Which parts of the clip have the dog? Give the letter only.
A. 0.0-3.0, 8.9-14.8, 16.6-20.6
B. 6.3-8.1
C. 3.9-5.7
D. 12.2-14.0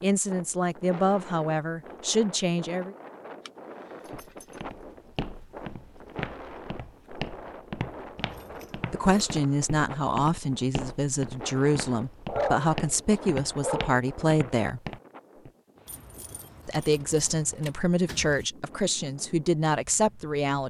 D.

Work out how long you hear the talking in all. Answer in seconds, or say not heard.
13 s.